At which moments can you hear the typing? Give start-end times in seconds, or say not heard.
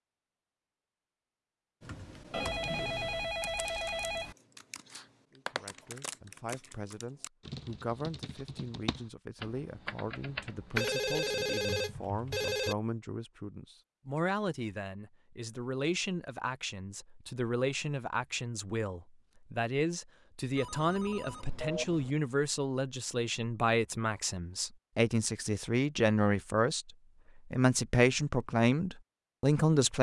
1.8-12.7.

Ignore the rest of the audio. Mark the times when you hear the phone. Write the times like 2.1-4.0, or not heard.
2.3-4.3, 10.8-12.8, 20.6-22.1.